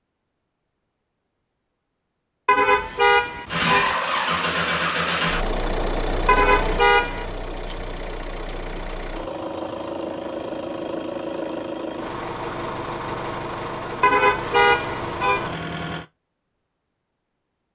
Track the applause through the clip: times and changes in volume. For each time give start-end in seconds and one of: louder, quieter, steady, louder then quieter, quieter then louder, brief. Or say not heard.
not heard.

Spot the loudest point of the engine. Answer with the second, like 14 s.
4 s.